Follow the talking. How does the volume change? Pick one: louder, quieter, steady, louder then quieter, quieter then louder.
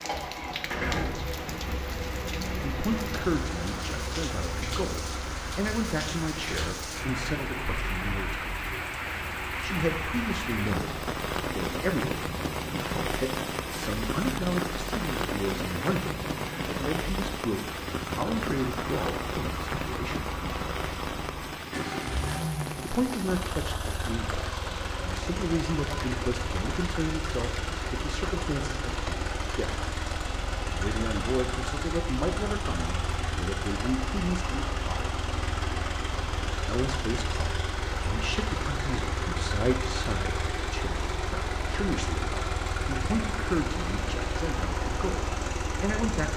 steady.